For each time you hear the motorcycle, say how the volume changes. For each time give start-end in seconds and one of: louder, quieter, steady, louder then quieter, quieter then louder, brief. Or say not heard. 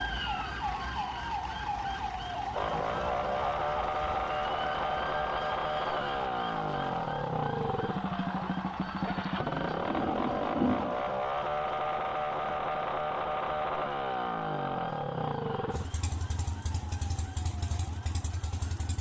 2.5-18.9 quieter.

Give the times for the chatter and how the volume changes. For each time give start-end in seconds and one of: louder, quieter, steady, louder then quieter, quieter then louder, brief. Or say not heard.
not heard.